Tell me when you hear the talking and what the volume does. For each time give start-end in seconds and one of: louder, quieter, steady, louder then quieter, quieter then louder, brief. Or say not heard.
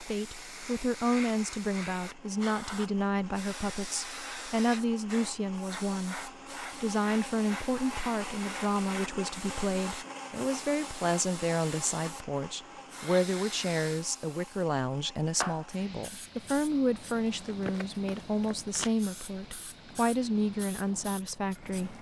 0.0-21.9 steady.